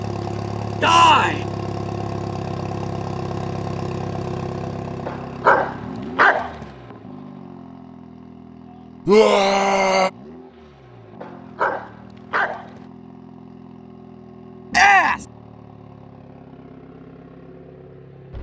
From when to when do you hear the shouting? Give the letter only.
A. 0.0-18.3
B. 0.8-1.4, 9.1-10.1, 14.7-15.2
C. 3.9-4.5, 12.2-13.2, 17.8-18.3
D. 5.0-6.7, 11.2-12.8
B.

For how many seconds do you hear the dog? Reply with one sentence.
You can hear the dog for 3 seconds altogether.